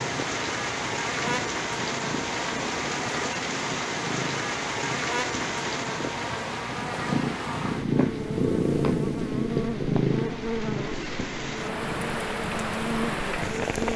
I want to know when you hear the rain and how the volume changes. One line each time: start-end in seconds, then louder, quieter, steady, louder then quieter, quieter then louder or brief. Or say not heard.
0.0-13.9 quieter then louder.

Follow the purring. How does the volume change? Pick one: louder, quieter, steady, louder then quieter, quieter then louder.
louder then quieter.